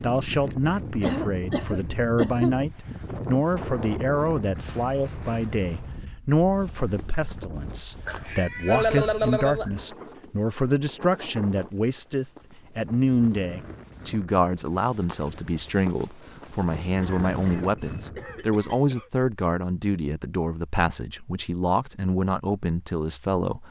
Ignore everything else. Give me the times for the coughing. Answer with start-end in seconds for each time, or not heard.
1.0-2.5, 8.1-9.7, 17.0-19.1.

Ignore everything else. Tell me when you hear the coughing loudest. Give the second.
9 s.